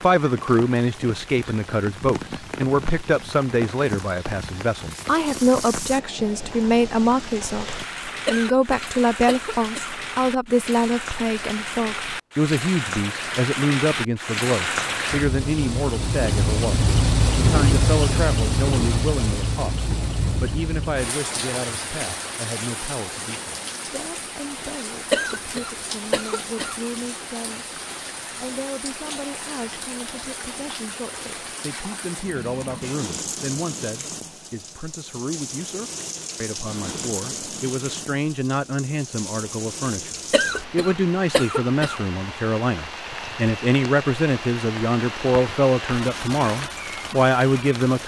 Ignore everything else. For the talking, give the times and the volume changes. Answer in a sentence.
The talking can be heard from 0.0 to 48.0 s, getting quieter then louder.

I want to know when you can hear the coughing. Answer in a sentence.
You can hear the coughing from 8.2 to 9.9 s, from 25.1 to 26.8 s and from 40.3 to 42.0 s.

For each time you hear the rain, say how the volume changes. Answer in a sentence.
You can hear the rain from 0.0 to 48.0 s, getting louder then quieter.